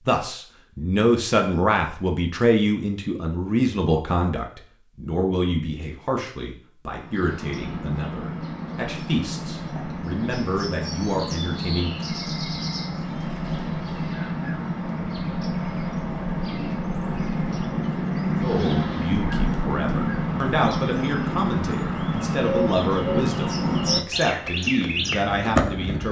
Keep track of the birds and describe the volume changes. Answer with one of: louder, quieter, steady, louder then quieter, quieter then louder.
louder.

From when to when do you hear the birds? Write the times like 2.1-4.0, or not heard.
6.9-26.0.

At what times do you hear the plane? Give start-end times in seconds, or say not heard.
not heard.